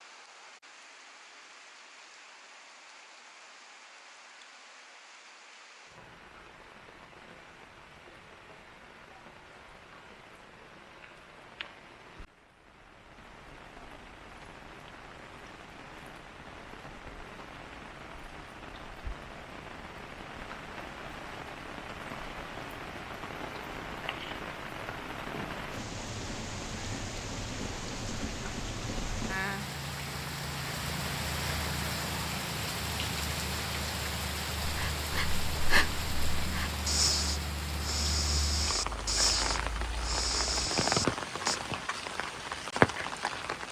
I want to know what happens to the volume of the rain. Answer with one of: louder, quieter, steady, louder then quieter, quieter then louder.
louder.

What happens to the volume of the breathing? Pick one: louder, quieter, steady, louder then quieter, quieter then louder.
steady.